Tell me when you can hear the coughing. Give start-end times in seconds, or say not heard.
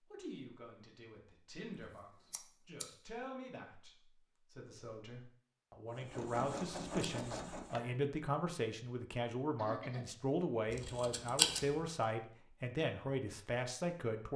9.6-10.1.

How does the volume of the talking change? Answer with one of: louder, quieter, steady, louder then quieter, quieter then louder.
louder.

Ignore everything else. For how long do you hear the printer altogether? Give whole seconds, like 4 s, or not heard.
2 s.